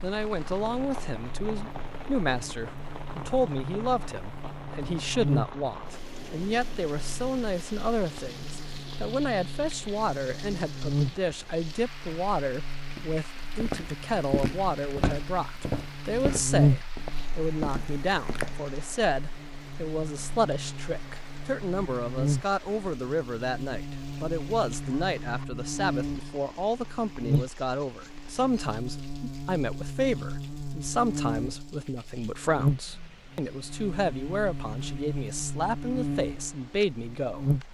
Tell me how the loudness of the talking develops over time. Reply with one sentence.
The loudness of the talking stays about the same.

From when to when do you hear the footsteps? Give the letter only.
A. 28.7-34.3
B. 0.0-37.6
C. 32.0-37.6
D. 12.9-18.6
D.